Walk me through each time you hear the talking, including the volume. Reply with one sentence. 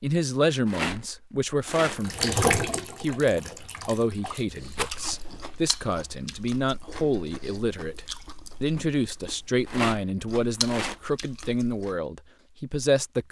The talking can be heard from 0.0 to 13.2 s, at a steady volume.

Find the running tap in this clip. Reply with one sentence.
You can hear the running tap from 1.8 to 4.9 s.